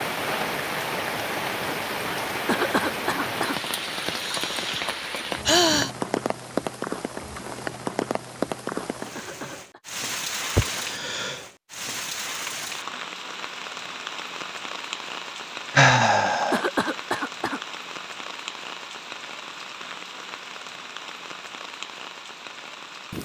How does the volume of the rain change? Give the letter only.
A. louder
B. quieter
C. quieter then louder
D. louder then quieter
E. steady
B.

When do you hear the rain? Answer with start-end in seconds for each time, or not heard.
0.0-23.1.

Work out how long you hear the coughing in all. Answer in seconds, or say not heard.
3 s.